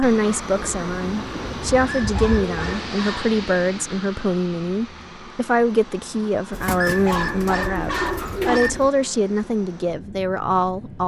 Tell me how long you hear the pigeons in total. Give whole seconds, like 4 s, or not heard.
5 s.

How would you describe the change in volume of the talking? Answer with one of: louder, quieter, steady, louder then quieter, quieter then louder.
steady.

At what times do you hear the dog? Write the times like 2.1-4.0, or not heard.
1.9-3.4, 6.8-8.8.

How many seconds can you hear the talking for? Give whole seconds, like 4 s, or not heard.
11 s.